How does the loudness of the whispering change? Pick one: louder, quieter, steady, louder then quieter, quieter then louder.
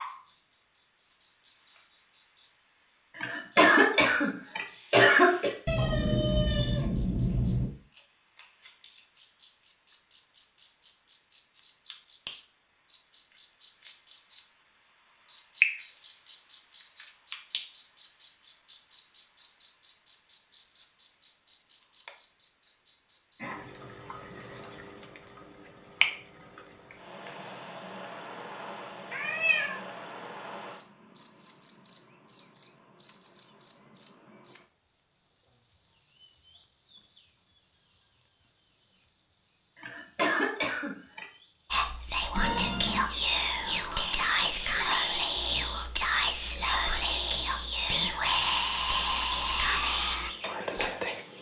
steady.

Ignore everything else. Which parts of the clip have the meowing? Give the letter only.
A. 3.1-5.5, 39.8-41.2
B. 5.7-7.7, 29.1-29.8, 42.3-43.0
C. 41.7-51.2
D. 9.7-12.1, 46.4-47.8
B.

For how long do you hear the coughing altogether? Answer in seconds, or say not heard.
4 s.